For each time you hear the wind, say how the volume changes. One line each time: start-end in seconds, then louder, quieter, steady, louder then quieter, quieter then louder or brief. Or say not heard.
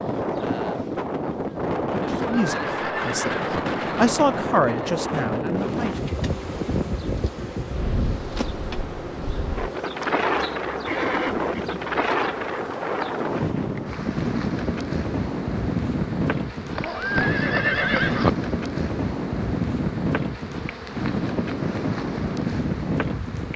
0.0-23.5 steady.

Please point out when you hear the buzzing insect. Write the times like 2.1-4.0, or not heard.
0.0-1.8, 5.5-23.5.